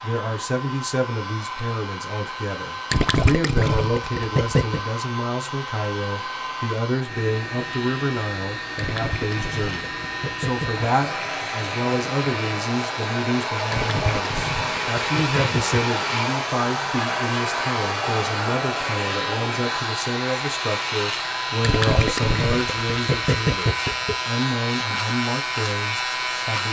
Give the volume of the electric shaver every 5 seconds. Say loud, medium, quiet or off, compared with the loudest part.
quiet, medium, medium, medium, loud, loud.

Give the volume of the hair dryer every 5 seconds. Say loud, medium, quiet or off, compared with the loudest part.
medium, medium, loud, loud, medium, medium.